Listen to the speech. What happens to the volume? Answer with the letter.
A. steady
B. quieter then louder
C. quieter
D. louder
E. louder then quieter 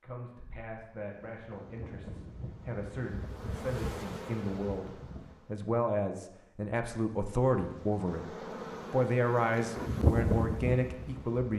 D.